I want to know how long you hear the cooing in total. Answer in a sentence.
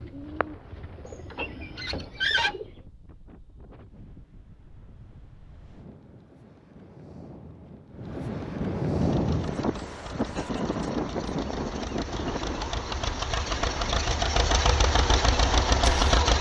The cooing can be heard for 3 seconds in total.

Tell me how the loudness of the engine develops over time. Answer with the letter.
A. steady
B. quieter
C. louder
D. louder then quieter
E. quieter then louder
C.